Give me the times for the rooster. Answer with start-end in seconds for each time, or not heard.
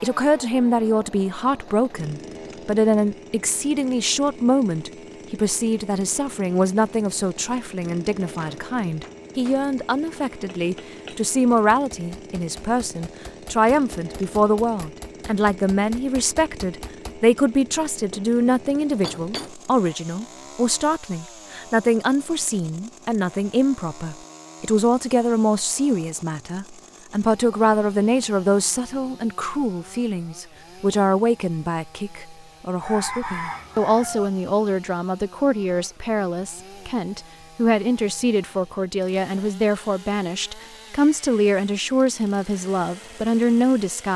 32.8-34.3.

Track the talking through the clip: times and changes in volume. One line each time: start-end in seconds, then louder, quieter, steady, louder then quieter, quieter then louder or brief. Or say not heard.
0.0-44.1 steady.